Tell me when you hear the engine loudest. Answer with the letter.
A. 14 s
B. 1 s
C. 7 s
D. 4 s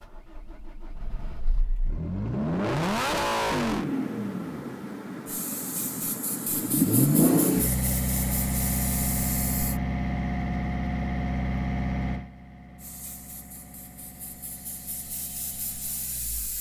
C.